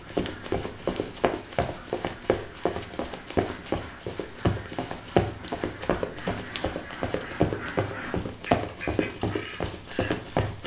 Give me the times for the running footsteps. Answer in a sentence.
The running footsteps can be heard from 0.0 to 10.6 s.